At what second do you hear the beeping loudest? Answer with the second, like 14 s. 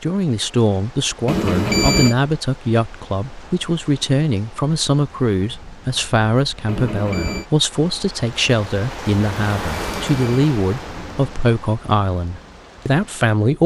2 s.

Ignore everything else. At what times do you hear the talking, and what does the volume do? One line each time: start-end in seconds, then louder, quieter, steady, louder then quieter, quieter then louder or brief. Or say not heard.
0.0-13.6 steady.